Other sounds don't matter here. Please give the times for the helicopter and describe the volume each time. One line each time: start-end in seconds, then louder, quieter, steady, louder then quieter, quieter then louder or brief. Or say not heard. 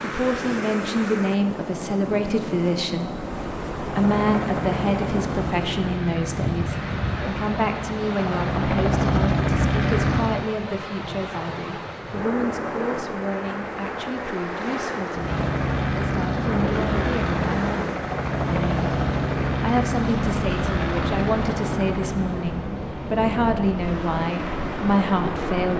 3.2-10.4 louder
15.1-25.7 quieter.